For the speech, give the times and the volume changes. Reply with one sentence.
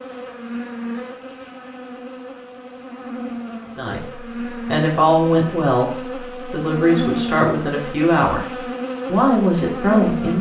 The speech can be heard from 3.8 to 10.3 s, at a steady volume.